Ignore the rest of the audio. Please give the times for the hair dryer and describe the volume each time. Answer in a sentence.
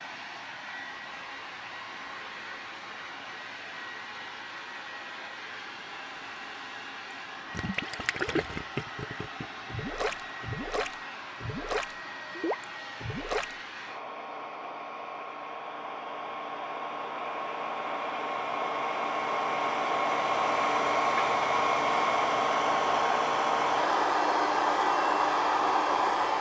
You can hear the hair dryer from 0.0 to 26.3 s, getting louder.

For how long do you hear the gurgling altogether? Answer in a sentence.
The gurgling can be heard for 6 seconds in total.